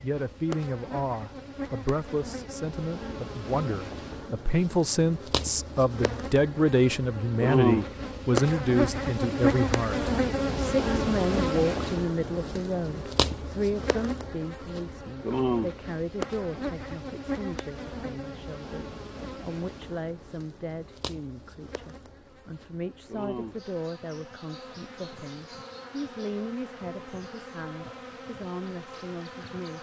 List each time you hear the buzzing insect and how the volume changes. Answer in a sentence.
The buzzing insect can be heard from 0.0 to 29.7 s, getting louder then quieter.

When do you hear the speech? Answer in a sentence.
The speech can be heard from 0.0 to 29.7 s.